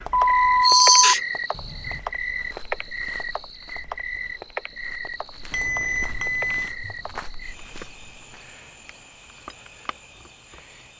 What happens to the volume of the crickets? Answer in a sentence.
The loudness of the crickets goes down.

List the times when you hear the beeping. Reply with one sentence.
The beeping can be heard from 0.1 to 2.0 s and from 5.5 to 6.8 s.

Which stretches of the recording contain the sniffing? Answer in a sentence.
You can hear the sniffing from 0.6 to 1.2 s.